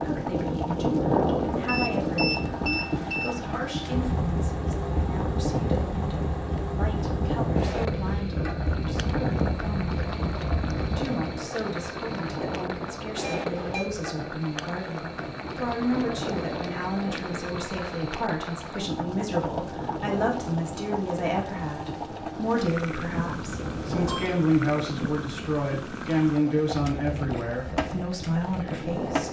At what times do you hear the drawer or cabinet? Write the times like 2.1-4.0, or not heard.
not heard.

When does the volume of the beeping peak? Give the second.
2 s.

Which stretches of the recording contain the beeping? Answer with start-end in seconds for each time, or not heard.
1.6-3.4, 13.2-13.9, 23.2-24.3.